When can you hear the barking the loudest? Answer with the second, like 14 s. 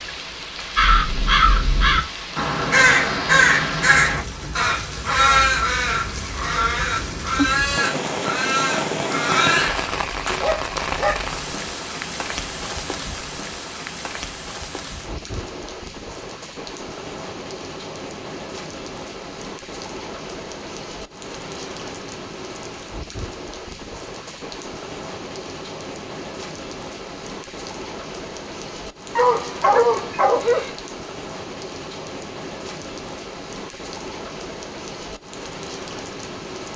30 s.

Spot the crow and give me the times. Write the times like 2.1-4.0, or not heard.
0.8-9.9.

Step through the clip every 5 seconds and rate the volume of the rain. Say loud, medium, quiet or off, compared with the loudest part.
medium, loud, loud, medium, medium, medium, medium, medium.